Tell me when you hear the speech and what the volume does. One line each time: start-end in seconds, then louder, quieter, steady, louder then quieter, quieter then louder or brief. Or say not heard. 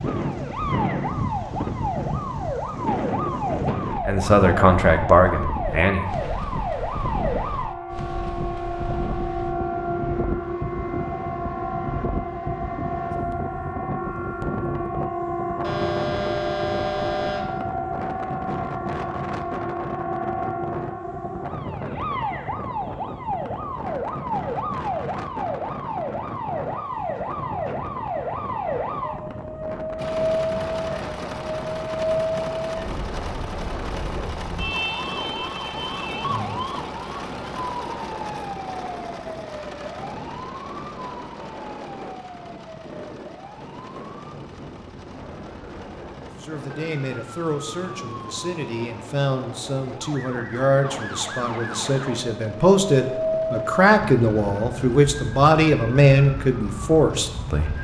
4.0-6.0 brief
46.4-57.8 louder.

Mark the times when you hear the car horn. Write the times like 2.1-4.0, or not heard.
15.6-17.6.